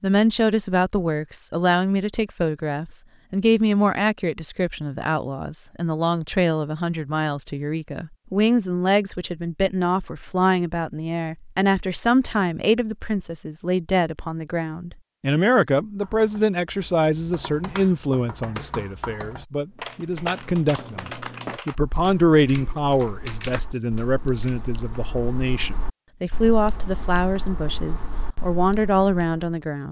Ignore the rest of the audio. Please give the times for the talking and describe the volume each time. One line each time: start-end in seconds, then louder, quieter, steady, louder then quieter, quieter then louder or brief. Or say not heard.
0.0-29.8 steady.